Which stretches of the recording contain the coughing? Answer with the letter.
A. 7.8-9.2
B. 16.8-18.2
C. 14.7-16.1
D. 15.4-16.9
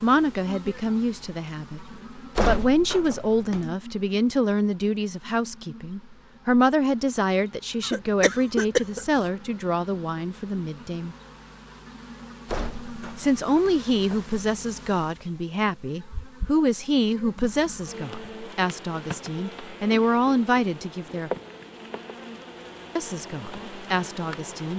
A.